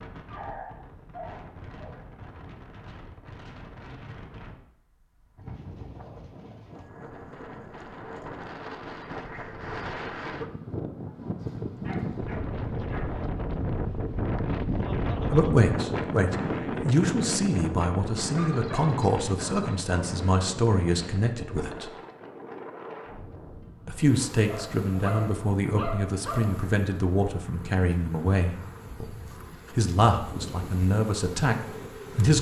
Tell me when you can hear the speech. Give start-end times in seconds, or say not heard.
15.3-21.9, 23.9-29.1, 29.7-32.3.